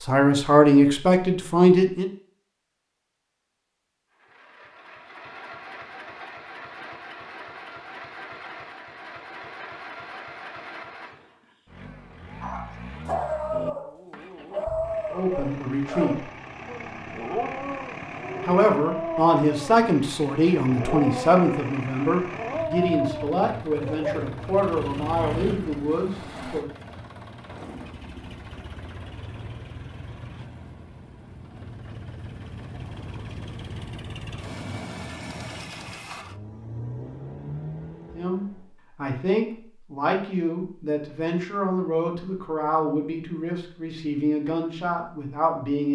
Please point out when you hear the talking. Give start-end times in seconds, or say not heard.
0.0-2.1, 15.1-16.2, 18.4-26.6, 38.1-45.9.